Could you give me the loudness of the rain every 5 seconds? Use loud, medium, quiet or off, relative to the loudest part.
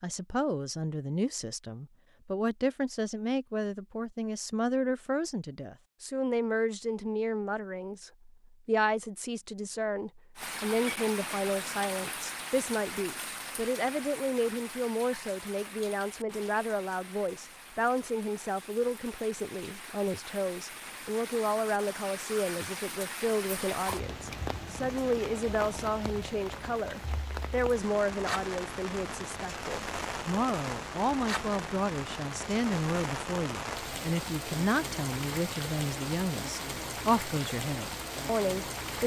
off, off, loud, medium, loud, loud, loud, loud.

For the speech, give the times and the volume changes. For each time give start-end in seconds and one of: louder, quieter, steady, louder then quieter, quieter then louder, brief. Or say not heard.
0.0-39.0 steady.